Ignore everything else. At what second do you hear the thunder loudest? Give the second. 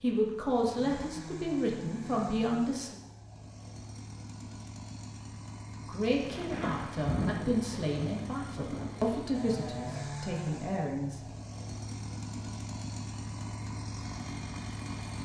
7 s.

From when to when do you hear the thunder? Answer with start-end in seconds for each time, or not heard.
6.2-9.1.